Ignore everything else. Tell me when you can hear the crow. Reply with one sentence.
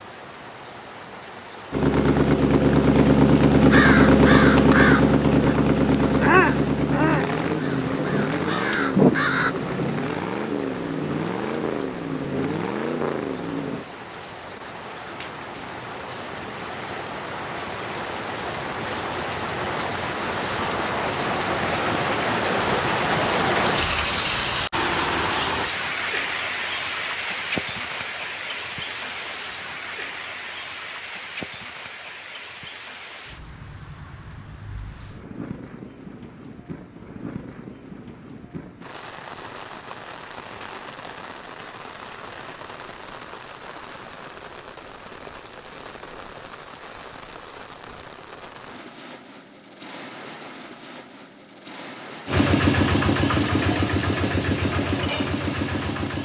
You can hear the crow from 3.7 to 9.5 s.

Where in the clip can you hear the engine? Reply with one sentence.
You can hear the engine from 1.7 to 13.8 s and from 52.2 to 56.2 s.